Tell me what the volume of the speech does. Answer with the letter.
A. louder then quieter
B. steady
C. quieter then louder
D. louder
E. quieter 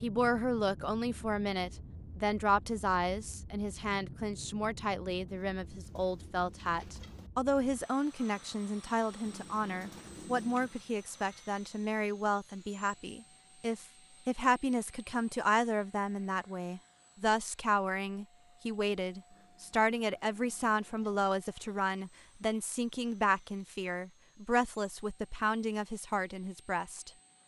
B.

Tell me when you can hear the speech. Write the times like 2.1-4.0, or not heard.
0.0-27.1.